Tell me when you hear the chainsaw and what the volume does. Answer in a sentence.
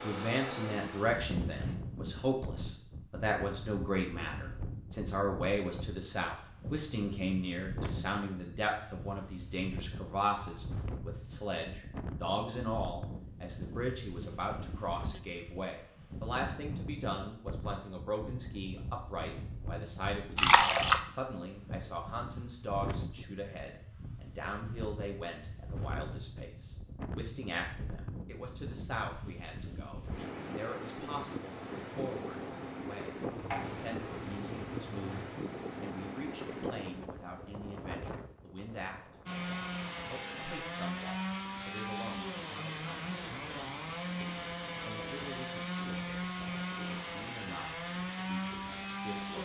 You can hear the chainsaw briefly from 0.0 to 1.8 s; and from 39.2 to 49.3 s, at a steady volume.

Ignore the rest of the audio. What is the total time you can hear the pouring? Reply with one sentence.
The pouring can be heard for 3 seconds in total.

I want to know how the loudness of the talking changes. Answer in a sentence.
The volume of the talking goes down.